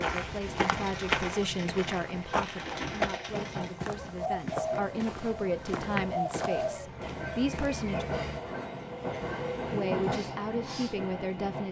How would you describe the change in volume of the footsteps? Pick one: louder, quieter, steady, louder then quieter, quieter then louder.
quieter.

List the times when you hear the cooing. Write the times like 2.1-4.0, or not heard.
0.7-8.4.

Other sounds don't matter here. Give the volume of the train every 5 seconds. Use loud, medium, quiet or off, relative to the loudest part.
medium, loud, loud.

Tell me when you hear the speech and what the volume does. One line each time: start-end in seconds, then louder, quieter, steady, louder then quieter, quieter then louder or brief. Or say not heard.
0.0-8.1 quieter then louder
9.7-11.6 brief.